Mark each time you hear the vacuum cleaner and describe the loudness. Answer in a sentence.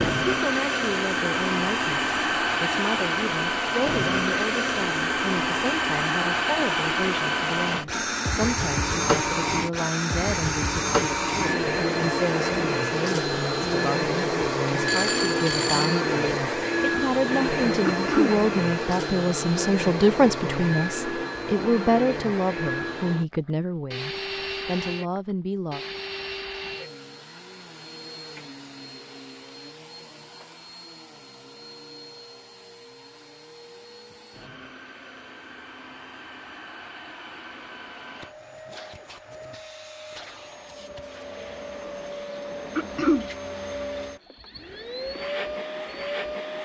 The vacuum cleaner can be heard from 0.0 to 46.6 s, getting quieter then louder.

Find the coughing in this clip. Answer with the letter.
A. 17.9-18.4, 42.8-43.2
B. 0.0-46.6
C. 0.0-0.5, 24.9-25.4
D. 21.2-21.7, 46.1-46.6
A.